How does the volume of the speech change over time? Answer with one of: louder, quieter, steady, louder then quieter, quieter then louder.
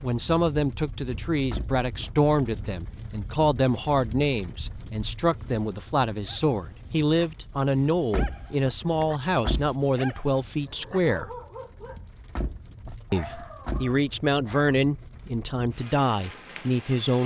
steady.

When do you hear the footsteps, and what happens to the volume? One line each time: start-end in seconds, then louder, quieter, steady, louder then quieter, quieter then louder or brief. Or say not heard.
not heard.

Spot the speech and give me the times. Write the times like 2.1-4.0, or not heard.
0.0-11.3, 13.1-17.2.